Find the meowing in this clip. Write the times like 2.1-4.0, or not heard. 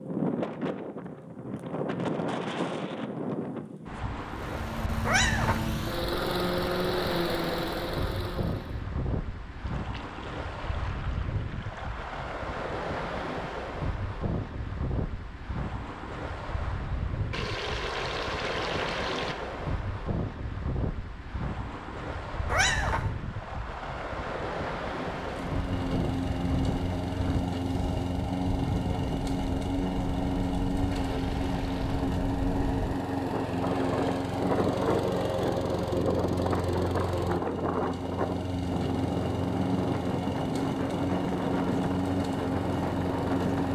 5.0-5.7, 22.4-23.1.